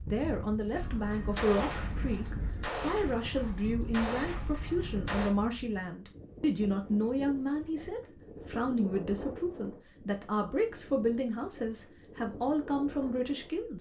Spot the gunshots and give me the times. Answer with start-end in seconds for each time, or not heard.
0.8-5.3.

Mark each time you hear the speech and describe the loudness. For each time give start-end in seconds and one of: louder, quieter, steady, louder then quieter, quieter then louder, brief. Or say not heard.
0.0-13.7 steady.